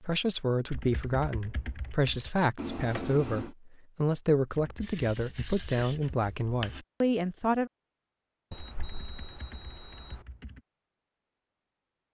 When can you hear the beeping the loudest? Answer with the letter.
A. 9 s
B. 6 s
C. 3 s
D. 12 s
C.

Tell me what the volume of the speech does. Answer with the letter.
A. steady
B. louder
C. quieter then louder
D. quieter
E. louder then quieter
A.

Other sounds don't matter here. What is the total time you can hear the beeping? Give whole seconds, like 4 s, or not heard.
3 s.